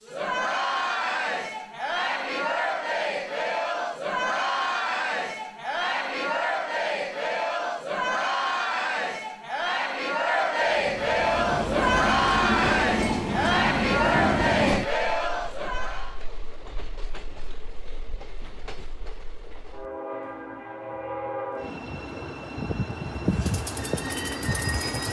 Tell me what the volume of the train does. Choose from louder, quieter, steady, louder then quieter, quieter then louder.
quieter then louder.